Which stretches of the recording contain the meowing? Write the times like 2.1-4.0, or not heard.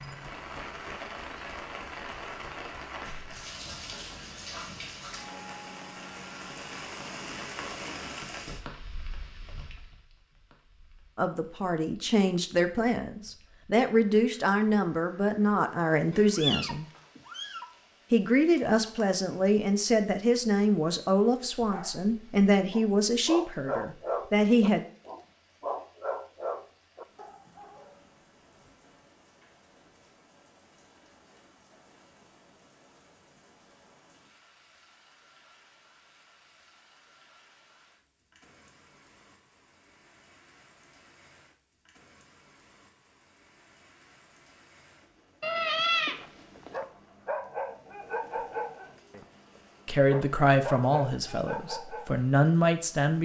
16.1-17.6, 45.4-46.7.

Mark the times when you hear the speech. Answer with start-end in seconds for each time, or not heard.
11.2-16.9, 18.1-24.9, 49.9-53.1.